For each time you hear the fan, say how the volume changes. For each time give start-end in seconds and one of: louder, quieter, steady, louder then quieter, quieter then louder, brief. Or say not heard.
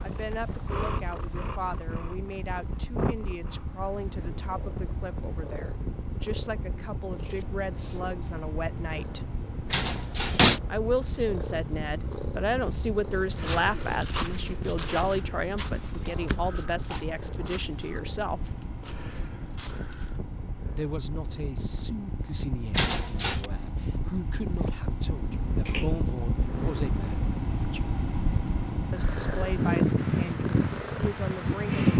0.0-31.9 louder.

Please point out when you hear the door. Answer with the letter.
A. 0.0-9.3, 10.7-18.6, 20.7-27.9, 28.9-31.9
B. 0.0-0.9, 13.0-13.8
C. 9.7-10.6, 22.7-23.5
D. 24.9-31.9
C.